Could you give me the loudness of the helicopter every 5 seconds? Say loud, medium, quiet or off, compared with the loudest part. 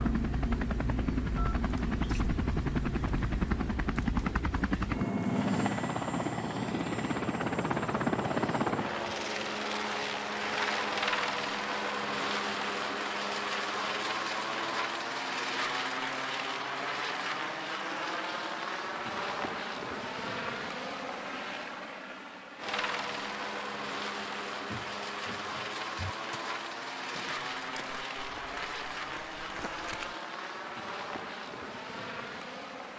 loud, loud, loud, loud, medium, medium, medium.